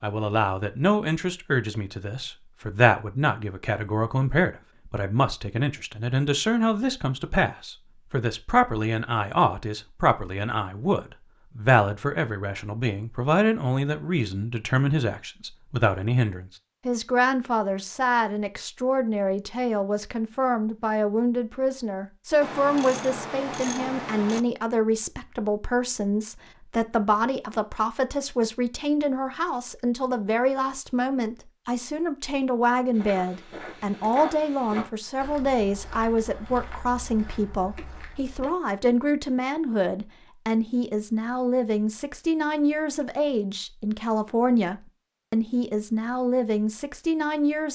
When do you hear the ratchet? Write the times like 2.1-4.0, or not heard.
22.4-24.4.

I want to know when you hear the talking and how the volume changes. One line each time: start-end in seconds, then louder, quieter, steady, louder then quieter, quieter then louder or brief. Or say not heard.
0.0-47.7 steady.